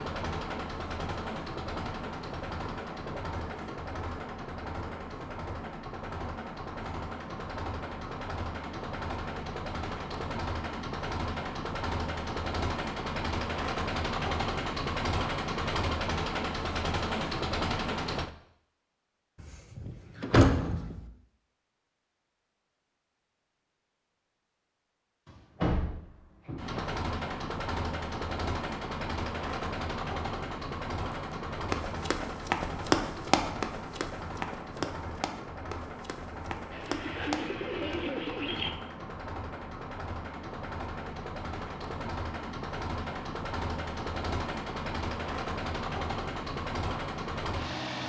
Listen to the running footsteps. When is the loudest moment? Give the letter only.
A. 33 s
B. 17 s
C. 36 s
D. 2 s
A.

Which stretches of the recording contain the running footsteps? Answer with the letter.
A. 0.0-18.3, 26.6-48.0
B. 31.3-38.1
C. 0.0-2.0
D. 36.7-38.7
B.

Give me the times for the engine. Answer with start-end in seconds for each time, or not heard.
0.0-18.3, 26.6-48.0.